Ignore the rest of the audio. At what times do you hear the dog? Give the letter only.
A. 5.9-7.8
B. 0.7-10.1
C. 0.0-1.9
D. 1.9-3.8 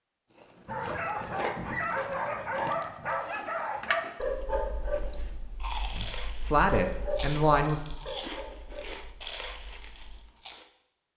B.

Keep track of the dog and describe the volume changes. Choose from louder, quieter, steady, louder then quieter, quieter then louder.
quieter.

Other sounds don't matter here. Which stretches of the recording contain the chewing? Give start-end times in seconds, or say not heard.
0.3-10.7.